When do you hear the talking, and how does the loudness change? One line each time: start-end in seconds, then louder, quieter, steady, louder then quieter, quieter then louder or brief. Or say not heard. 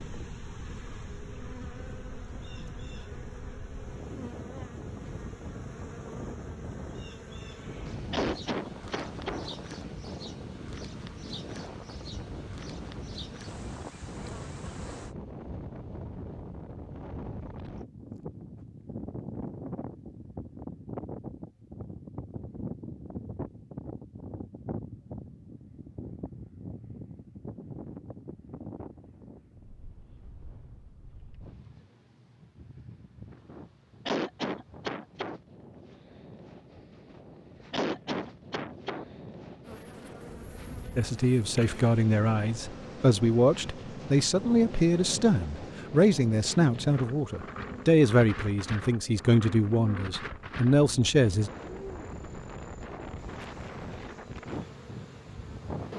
41.0-51.5 steady.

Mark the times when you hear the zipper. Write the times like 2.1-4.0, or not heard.
not heard.